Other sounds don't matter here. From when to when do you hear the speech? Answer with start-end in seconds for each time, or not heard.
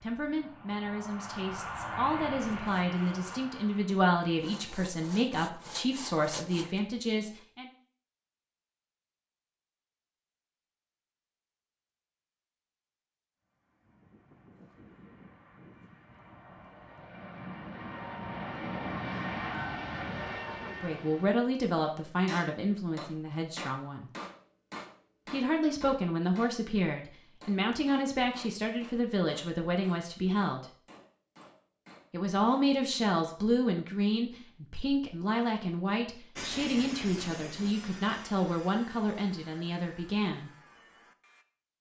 0.0-7.7, 20.6-24.1, 25.3-30.6, 32.1-40.5.